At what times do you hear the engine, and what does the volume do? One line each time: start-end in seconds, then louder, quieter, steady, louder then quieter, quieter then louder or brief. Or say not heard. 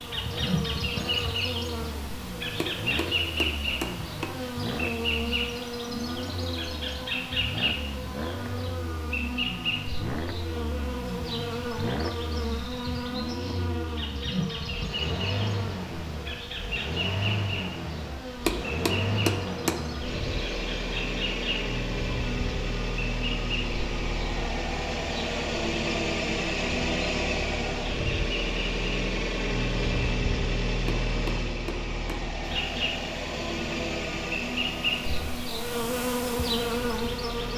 0.1-37.5 louder.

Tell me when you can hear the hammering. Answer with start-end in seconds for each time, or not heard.
2.5-4.3, 18.4-19.9, 30.9-32.4.